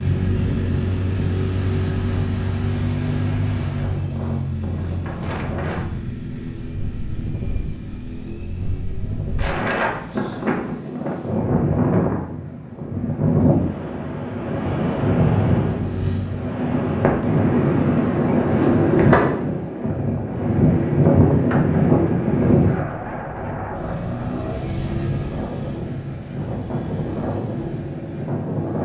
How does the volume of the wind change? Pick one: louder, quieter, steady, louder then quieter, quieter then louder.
louder then quieter.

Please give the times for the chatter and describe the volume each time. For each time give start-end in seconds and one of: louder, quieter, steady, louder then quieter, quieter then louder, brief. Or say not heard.
not heard.